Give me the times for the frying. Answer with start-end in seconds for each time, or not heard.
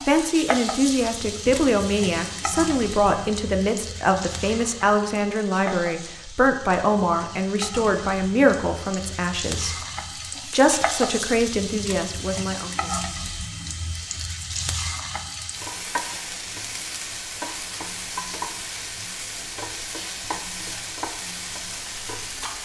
0.0-22.6.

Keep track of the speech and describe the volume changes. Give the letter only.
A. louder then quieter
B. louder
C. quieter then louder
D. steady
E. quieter
D.